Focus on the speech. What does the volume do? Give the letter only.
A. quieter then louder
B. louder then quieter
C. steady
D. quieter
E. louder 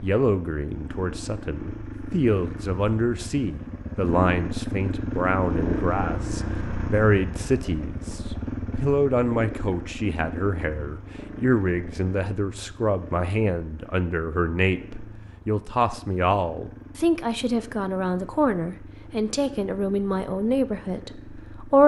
C.